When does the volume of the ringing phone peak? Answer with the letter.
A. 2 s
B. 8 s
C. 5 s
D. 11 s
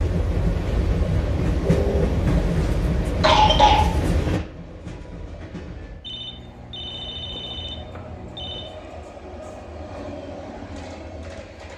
A.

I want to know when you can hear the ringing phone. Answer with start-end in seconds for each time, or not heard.
1.6-2.2, 6.0-8.7.